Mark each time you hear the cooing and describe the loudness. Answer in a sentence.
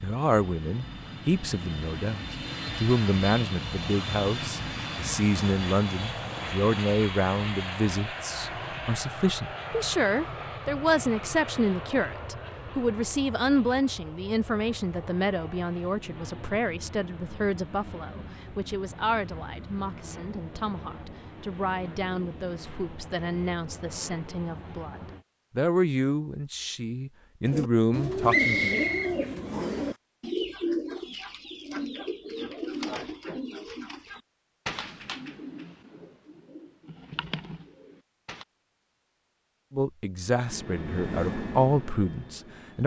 The cooing can be heard from 27.4 to 38.5 s, getting quieter.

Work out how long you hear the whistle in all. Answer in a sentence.
You can hear the whistle for 2 seconds altogether.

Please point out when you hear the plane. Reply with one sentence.
The plane can be heard from 0.0 to 25.2 s and from 40.4 to 42.8 s.